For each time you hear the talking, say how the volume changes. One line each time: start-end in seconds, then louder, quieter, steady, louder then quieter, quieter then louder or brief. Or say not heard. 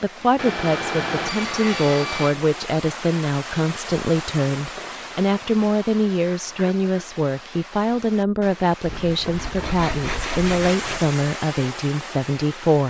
0.0-12.8 steady.